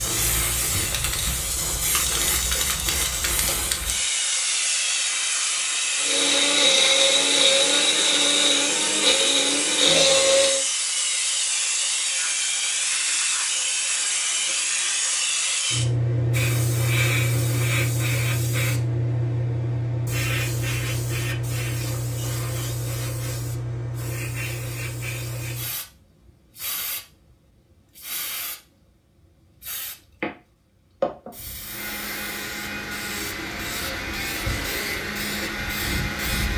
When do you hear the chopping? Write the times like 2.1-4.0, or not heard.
not heard.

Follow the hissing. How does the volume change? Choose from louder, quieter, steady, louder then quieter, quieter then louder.
quieter.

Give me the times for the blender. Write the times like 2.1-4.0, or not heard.
6.0-10.7, 31.6-36.5.